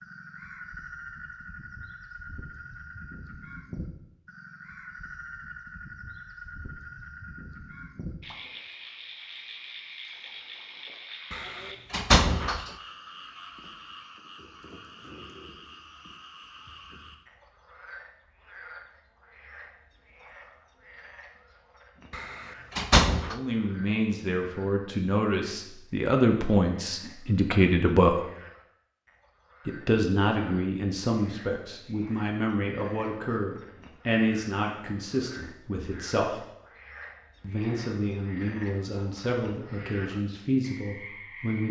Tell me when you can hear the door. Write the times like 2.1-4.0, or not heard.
11.3-12.7, 22.1-23.4.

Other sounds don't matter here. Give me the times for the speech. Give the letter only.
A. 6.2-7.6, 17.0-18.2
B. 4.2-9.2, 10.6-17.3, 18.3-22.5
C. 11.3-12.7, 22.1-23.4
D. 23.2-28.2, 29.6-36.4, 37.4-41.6
D.